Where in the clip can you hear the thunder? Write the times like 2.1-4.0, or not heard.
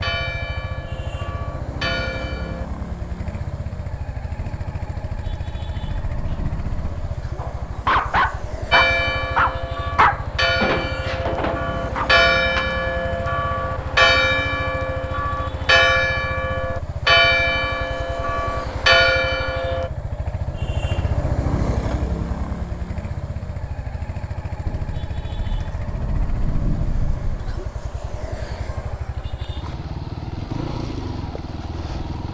4.4-7.4, 24.6-27.6.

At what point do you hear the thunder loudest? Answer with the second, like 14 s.
27 s.